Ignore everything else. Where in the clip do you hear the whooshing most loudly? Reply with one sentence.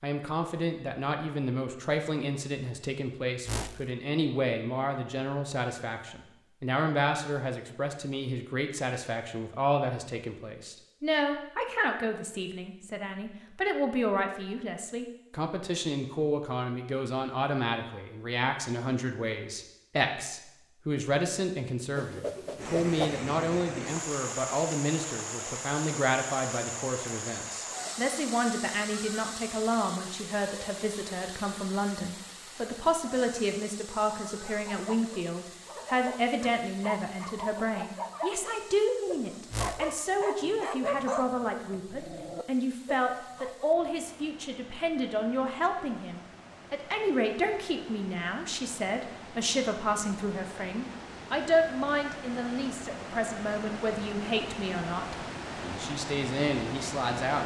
The loudest moment of the whooshing is at 23 seconds.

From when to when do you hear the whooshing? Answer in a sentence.
You can hear the whooshing from 3.5 to 3.9 s, from 21.9 to 23.2 s and from 39.5 to 40.0 s.